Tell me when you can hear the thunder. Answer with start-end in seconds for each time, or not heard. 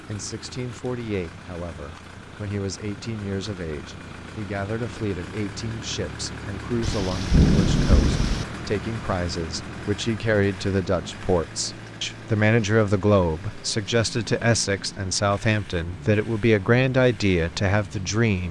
6.8-8.4.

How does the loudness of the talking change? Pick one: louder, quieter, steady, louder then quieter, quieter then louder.
louder.